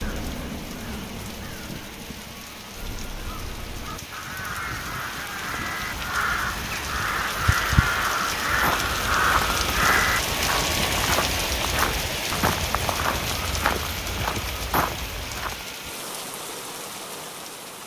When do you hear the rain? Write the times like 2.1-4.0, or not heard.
0.0-17.8.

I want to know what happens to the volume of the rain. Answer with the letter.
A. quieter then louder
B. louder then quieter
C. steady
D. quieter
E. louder
B.